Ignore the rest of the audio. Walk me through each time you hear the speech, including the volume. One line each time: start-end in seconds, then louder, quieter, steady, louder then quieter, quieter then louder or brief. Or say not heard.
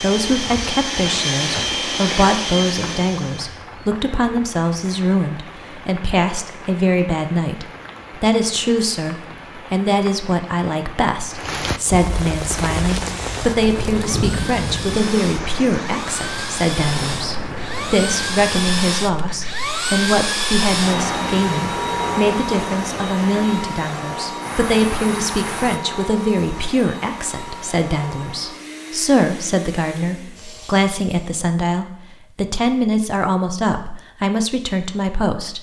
0.0-35.5 steady.